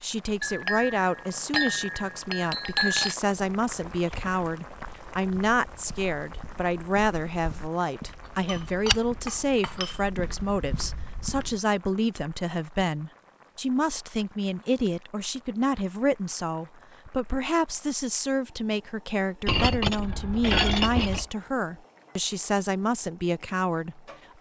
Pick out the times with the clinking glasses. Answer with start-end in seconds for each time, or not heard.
0.4-3.1, 8.4-10.0, 19.4-21.2.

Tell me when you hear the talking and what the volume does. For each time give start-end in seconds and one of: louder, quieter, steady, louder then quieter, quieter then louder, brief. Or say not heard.
0.0-24.3 steady.